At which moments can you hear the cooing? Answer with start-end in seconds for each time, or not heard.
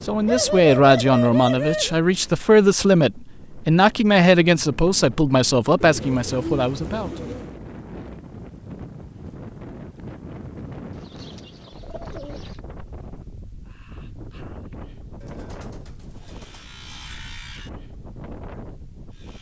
0.2-1.9, 5.8-7.5, 10.9-12.6, 15.2-17.2.